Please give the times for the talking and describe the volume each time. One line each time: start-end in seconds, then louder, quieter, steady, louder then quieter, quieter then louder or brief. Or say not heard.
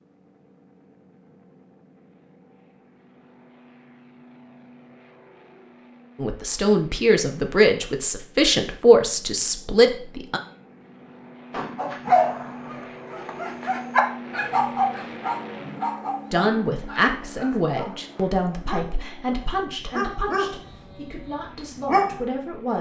6.2-10.4 steady
16.3-22.7 quieter.